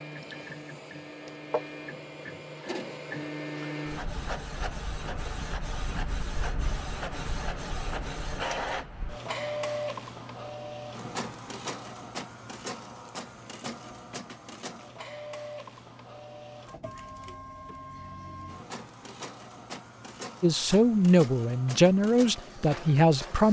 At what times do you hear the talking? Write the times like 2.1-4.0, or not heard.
20.4-23.4.